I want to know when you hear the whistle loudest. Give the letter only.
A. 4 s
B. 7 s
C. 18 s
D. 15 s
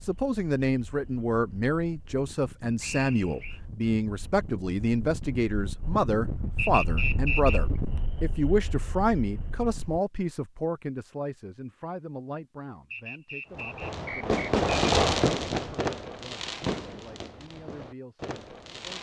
B.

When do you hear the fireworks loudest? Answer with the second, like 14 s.
15 s.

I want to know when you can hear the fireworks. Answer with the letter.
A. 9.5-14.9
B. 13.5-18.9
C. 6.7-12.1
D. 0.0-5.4
B.